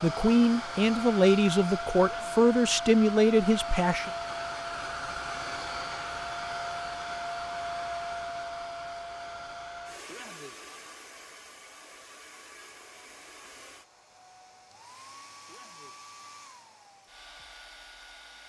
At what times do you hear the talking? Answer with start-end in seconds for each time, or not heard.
0.0-4.1.